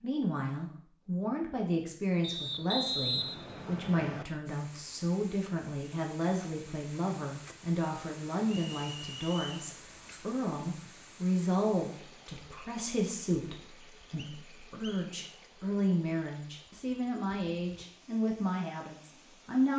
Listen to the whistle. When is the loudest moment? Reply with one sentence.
The loudest moment of the whistle is at 3 seconds.